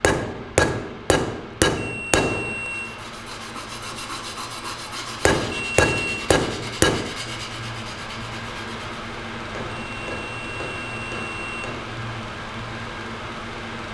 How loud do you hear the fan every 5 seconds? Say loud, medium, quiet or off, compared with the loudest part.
medium, loud, loud.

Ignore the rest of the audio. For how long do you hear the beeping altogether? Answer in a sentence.
You can hear the beeping for 4 seconds altogether.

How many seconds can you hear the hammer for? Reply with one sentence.
The hammer can be heard for 7 seconds in total.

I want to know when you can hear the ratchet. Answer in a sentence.
The ratchet can't be heard in this clip.